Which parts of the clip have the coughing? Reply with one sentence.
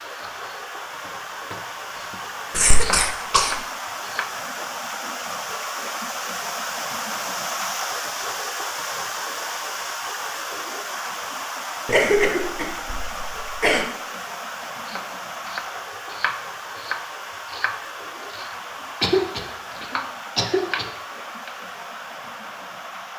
You can hear the coughing from 2.5 to 3.6 s, from 11.8 to 13.8 s and from 19.0 to 20.9 s.